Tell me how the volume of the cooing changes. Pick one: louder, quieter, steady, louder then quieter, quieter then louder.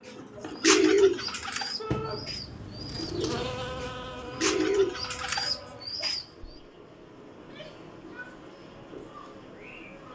quieter then louder.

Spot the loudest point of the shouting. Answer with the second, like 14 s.
2 s.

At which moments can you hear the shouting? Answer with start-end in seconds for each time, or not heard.
1.8-2.2, 7.3-8.3.